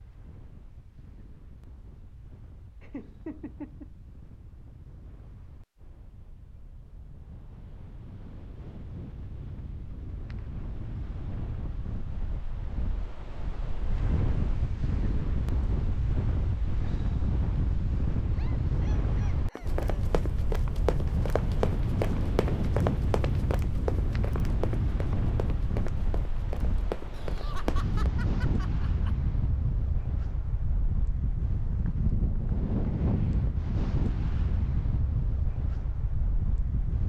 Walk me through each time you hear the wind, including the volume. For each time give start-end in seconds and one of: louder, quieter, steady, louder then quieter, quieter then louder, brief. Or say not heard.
0.0-37.0 louder.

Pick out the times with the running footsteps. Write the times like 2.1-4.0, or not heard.
19.6-28.1.